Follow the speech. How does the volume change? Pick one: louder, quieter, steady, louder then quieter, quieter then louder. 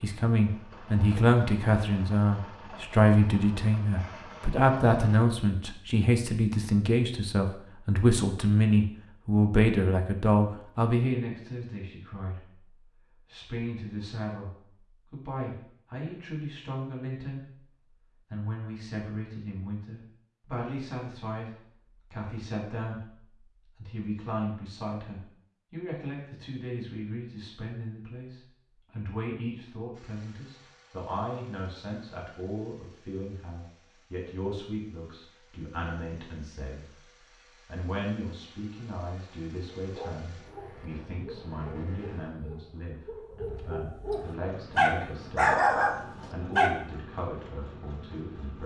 quieter.